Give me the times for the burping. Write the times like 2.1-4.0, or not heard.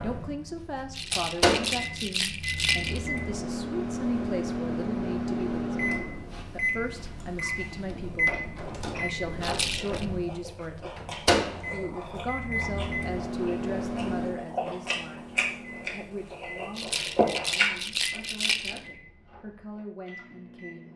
not heard.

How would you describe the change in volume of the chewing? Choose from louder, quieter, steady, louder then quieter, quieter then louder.
louder.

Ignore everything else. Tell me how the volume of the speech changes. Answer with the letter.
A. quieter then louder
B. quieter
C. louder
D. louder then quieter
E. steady
B.